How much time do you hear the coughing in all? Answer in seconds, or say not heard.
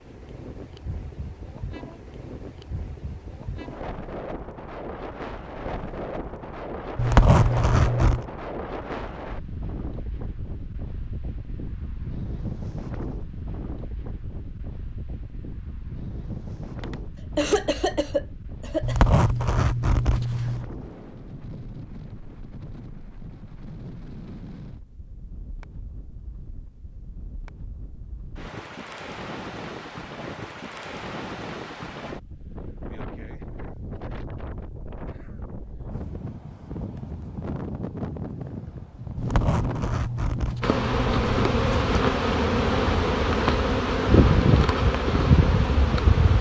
2 s.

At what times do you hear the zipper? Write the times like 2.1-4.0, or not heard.
7.0-8.2, 18.8-20.6, 39.1-41.9.